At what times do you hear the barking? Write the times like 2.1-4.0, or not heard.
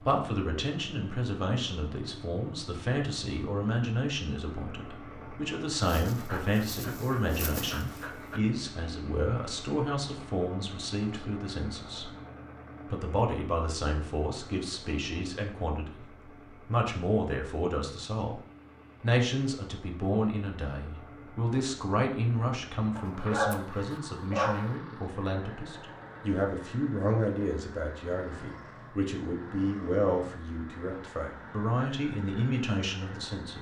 5.8-8.4, 22.9-24.7.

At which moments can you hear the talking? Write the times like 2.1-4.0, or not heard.
0.0-12.1, 12.9-16.1, 16.6-18.4, 19.0-33.5.